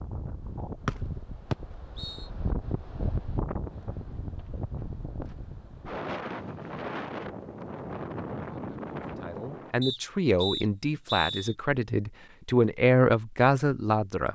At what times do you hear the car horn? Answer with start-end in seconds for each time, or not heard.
not heard.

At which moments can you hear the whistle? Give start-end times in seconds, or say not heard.
0.8-2.2, 9.8-11.6.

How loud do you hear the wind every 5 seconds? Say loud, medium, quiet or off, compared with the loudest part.
loud, loud, off.